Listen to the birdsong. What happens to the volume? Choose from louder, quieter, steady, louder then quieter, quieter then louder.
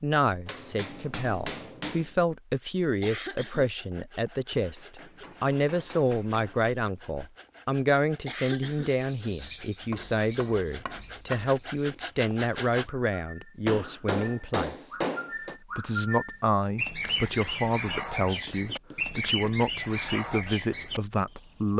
quieter then louder.